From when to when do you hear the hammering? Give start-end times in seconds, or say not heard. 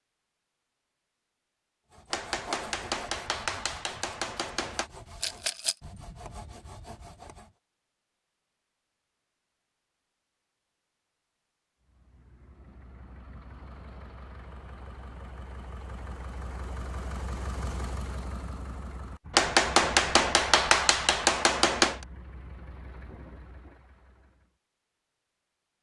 2.1-4.9, 19.3-22.1.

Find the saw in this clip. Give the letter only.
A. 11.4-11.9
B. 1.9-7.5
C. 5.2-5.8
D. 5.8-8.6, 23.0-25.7
B.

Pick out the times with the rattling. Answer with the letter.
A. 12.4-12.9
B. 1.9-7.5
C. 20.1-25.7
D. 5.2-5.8
D.